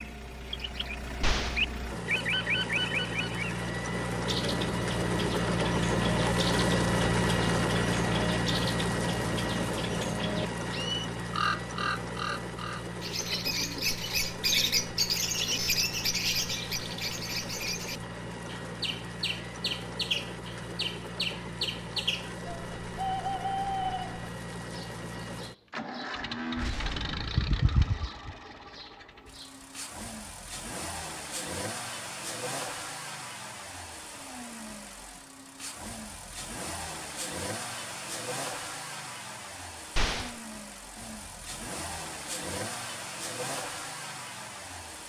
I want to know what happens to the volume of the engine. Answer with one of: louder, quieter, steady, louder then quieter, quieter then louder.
quieter.